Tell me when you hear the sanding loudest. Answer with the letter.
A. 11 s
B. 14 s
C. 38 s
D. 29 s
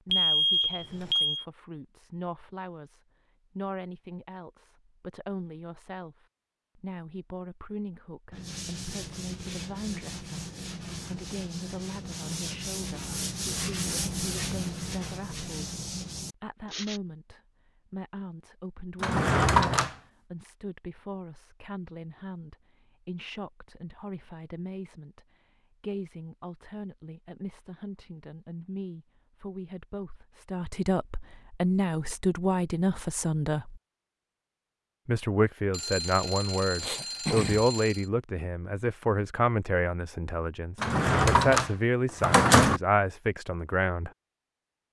B.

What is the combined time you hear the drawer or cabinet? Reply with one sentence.
The drawer or cabinet can be heard for 3 seconds in total.